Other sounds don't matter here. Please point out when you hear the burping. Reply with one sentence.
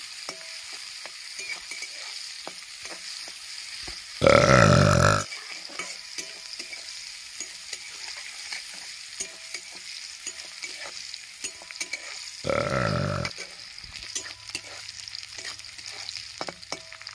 The burping can be heard from 4.2 to 5.2 s and from 12.4 to 13.3 s.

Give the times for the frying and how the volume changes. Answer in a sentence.
You can hear the frying from 0.0 to 17.1 s, at a steady volume.